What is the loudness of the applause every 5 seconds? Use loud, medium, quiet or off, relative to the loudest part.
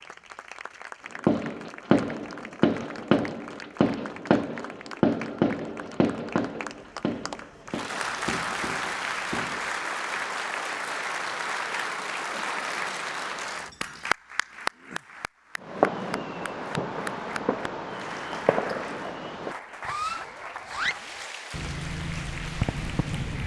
quiet, loud, loud, medium, medium.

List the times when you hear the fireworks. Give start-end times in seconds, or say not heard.
1.2-9.8, 15.6-23.4.